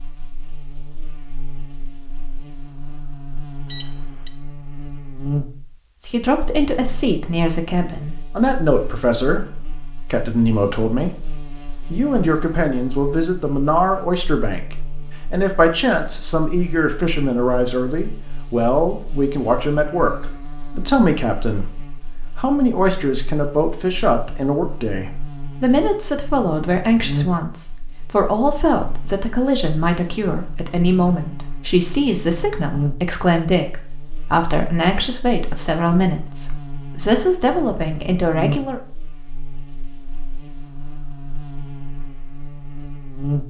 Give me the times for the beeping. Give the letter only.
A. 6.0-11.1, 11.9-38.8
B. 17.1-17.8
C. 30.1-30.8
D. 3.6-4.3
D.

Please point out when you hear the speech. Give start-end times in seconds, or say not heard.
6.0-11.1, 11.9-38.8.